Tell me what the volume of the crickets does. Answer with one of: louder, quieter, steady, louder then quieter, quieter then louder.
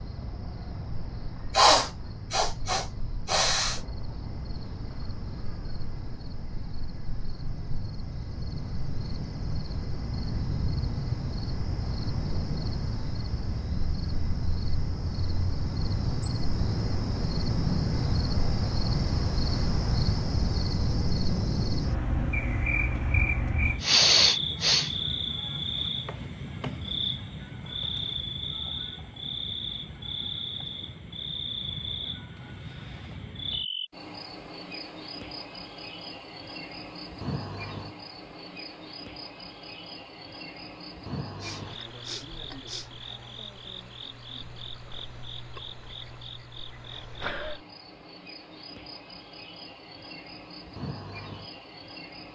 louder then quieter.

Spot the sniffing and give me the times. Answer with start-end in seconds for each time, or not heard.
1.6-3.8, 23.8-24.9, 41.4-42.9.